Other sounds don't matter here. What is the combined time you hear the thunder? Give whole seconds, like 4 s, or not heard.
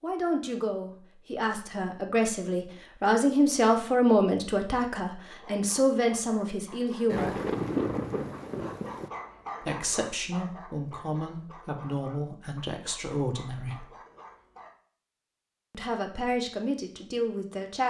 2 s.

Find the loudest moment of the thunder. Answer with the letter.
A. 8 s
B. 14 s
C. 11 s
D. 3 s
A.